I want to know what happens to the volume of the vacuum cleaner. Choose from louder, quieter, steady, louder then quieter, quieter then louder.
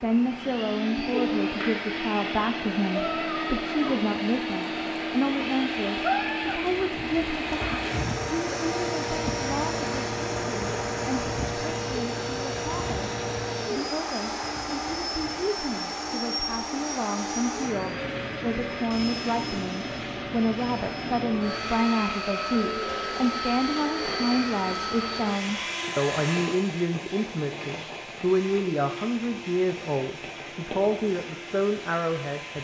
quieter.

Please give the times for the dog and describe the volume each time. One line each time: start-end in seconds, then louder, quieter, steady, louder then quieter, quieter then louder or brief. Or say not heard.
not heard.